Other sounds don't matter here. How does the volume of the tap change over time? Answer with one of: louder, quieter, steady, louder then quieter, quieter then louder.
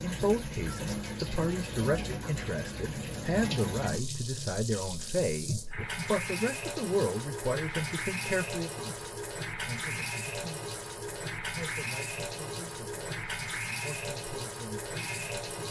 steady.